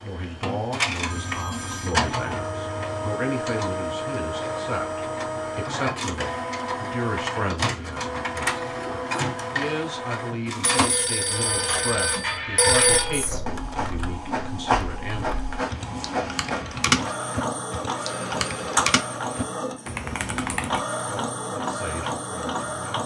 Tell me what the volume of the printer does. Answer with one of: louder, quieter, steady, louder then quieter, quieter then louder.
steady.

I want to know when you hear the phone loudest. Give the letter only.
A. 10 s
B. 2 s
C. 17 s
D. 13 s
D.